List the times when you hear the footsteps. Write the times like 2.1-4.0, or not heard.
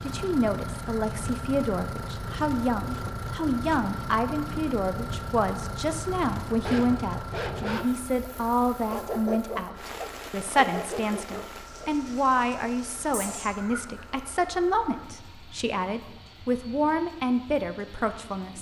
not heard.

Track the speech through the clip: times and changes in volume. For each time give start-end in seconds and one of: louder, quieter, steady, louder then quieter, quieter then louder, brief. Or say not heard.
0.0-18.5 steady.